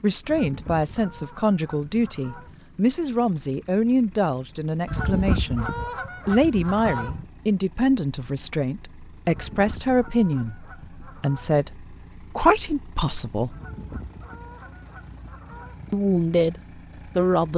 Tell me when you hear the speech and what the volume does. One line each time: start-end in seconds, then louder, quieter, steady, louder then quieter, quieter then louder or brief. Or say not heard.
0.0-13.6 steady
15.9-17.5 brief.